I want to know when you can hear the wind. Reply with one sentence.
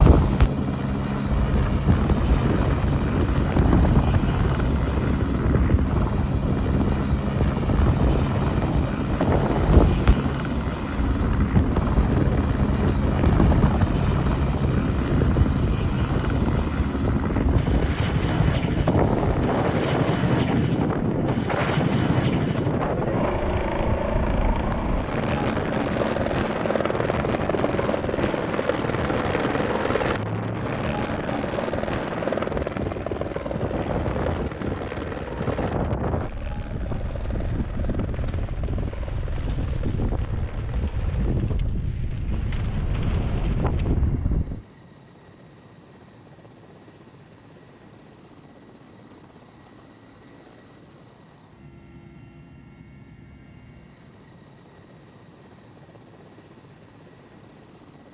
You can hear the wind from 0.0 to 44.6 s.